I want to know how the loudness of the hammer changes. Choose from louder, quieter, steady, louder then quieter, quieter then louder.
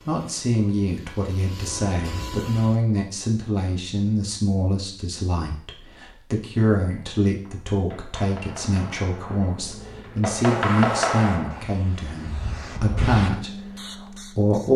louder.